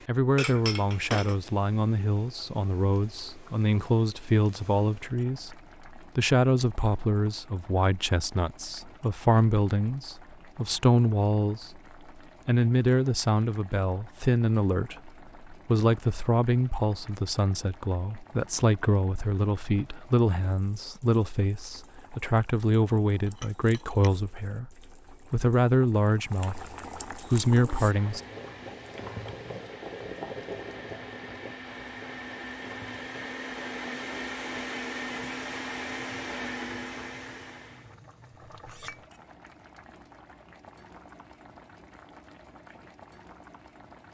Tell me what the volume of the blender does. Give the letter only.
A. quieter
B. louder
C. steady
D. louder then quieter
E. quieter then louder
B.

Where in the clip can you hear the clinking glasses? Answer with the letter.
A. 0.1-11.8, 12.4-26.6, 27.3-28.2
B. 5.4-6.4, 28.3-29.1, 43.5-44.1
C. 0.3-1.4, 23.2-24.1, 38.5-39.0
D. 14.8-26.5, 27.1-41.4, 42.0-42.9
C.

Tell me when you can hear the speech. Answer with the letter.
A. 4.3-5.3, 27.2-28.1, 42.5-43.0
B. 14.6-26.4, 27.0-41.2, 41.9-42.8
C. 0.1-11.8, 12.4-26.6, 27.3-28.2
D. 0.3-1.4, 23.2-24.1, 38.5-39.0
C.